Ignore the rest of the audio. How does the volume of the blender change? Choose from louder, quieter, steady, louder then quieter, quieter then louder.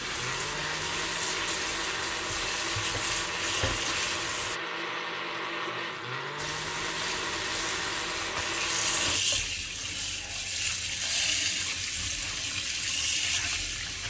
steady.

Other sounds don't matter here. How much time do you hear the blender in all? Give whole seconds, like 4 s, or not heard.
9 s.